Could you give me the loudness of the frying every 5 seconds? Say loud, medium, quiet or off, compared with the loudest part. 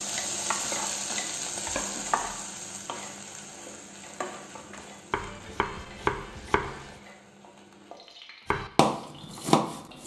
loud, quiet.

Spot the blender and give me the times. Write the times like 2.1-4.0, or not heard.
not heard.